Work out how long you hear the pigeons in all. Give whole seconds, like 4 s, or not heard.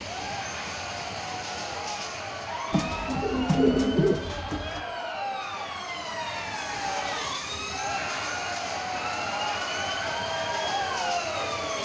2 s.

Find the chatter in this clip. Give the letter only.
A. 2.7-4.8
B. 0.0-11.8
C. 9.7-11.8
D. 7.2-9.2
B.